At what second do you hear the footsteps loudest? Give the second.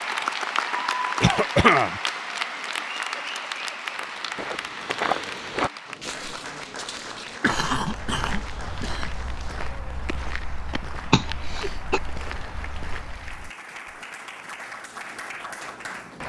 5 s.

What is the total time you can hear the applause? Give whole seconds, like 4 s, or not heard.
16 s.